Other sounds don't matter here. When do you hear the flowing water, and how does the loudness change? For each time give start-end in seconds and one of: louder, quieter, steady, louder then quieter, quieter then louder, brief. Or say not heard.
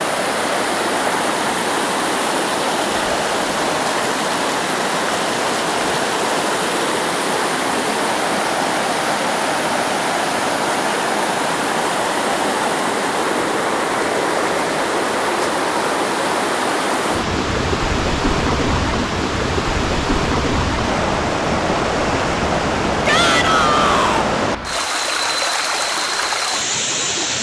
0.0-27.3 steady.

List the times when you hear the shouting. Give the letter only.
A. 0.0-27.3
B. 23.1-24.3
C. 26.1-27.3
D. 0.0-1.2
B.